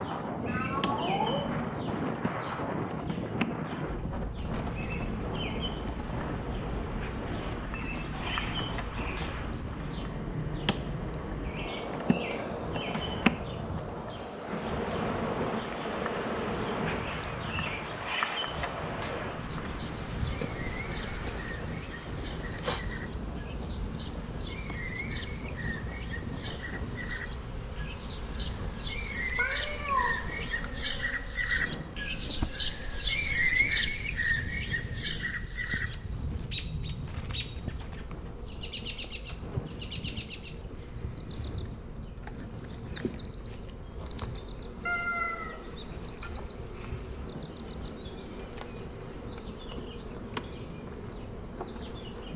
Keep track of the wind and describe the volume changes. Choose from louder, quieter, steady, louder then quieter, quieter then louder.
quieter.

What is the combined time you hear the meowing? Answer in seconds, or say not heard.
3 s.